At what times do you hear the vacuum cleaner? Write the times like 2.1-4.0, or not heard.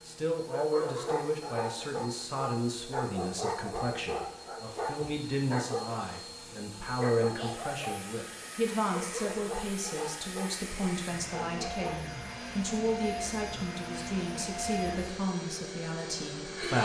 0.0-16.8.